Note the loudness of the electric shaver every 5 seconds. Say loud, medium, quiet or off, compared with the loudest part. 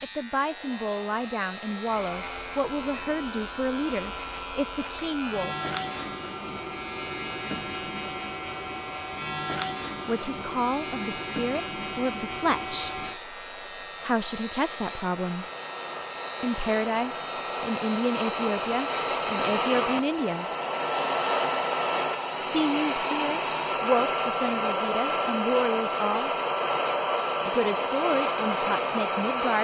loud, loud, loud, loud, off, off.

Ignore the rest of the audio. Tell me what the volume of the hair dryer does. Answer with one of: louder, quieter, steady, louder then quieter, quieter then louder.
louder.